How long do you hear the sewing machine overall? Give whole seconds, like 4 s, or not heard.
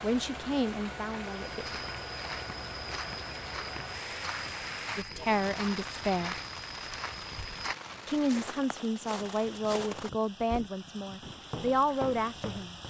not heard.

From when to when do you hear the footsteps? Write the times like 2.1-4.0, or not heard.
1.4-12.8.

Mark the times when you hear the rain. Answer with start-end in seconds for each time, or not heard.
0.0-12.8.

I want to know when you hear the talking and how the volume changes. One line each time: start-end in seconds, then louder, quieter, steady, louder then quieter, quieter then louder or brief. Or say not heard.
0.0-1.8 brief
5.0-6.3 brief
8.1-12.8 quieter then louder.